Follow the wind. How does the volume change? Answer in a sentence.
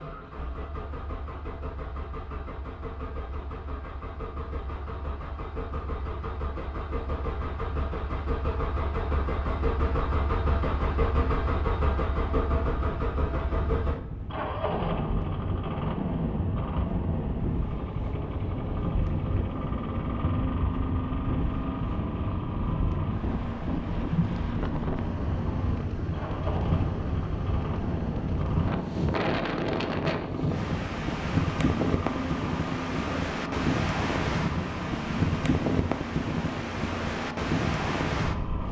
The volume of the wind goes up.